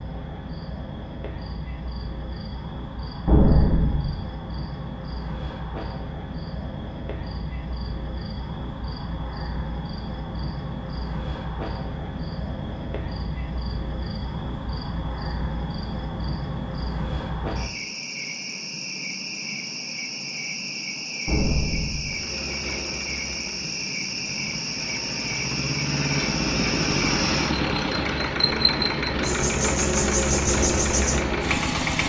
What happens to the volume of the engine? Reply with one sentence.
The volume of the engine goes up.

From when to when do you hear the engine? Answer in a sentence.
The engine can be heard from 22.0 to 32.0 s.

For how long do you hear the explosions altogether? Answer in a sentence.
The explosions can be heard for 2 seconds in total.